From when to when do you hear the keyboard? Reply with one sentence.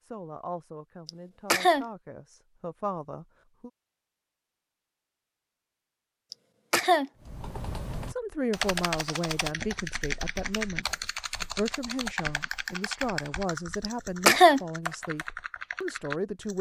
You can hear the keyboard from 7.2 to 16.5 s.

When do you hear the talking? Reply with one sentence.
You can hear the talking from 0.0 to 3.7 s and from 8.1 to 16.5 s.